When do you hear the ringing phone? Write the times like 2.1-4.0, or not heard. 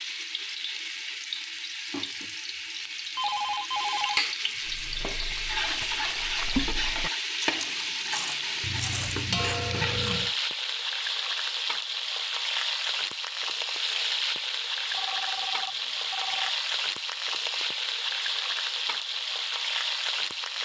3.1-4.2, 8.6-10.3, 14.9-16.5.